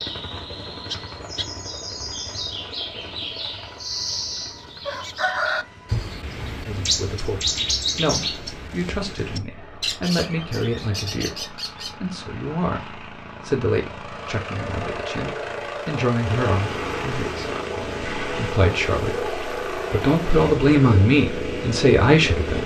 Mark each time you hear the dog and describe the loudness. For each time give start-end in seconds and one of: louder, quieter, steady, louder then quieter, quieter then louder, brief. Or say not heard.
not heard.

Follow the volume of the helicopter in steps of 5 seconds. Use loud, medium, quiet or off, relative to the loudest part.
quiet, quiet, medium, loud, loud.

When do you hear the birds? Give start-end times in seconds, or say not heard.
0.0-11.9.